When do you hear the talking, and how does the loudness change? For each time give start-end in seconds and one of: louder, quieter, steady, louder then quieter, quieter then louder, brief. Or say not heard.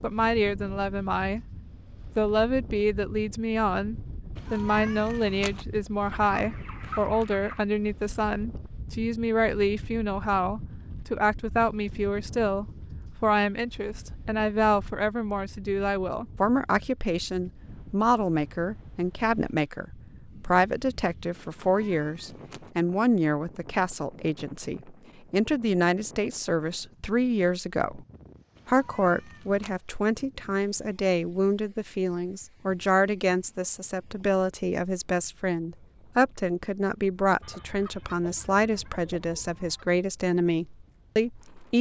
0.0-1.4 brief
2.1-28.1 steady
28.6-41.7 steady.